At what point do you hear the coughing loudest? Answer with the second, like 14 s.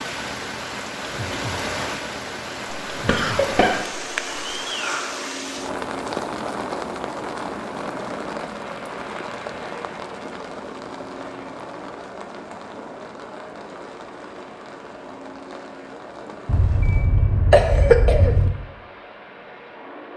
18 s.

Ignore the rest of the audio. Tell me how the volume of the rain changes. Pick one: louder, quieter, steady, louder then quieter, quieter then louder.
quieter.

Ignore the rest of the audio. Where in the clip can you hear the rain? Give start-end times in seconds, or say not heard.
0.0-17.1.